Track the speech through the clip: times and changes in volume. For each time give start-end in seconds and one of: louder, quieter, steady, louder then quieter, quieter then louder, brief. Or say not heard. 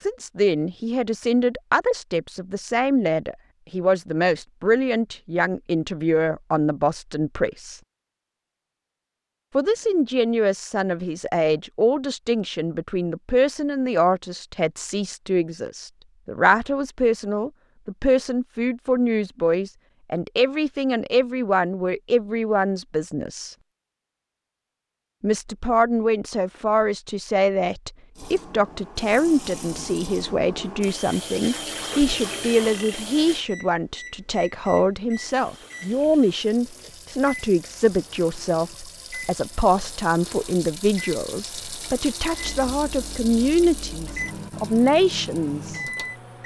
0.0-7.8 steady
9.6-23.6 steady
25.2-45.8 steady.